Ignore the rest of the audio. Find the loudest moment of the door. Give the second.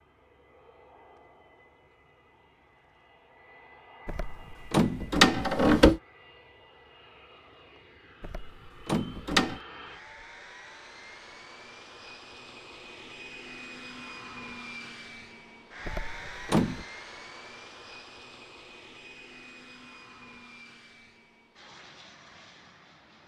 6 s.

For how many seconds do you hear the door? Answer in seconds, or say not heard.
4 s.